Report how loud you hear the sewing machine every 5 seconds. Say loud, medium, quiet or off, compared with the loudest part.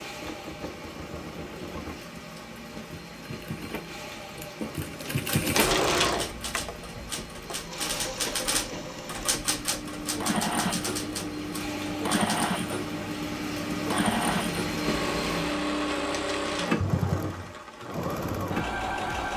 medium, loud, loud, loud.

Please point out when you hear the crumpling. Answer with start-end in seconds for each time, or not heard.
5.5-6.2, 16.1-16.8.